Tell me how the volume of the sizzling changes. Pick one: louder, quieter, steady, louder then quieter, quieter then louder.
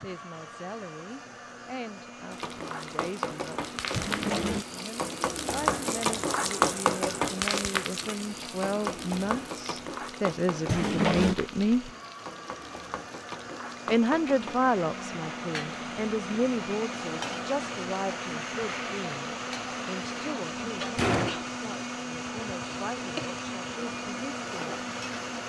quieter.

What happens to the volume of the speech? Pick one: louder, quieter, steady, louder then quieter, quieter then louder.
louder then quieter.